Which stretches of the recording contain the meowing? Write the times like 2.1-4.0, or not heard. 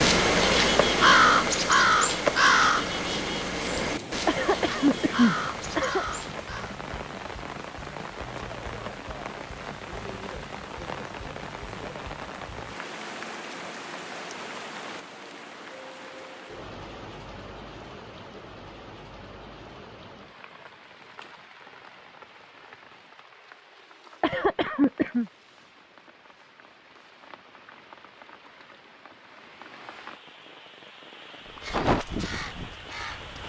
not heard.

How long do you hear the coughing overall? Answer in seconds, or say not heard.
3 s.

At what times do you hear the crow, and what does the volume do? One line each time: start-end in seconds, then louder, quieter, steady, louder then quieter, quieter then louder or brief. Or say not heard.
0.0-6.8 quieter
31.4-33.4 brief.